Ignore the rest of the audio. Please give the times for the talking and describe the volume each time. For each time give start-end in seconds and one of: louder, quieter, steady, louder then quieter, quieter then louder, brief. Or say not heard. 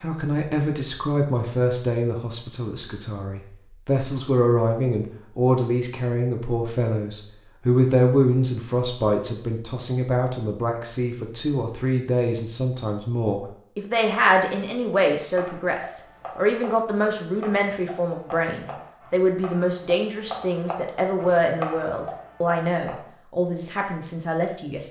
0.0-24.8 steady.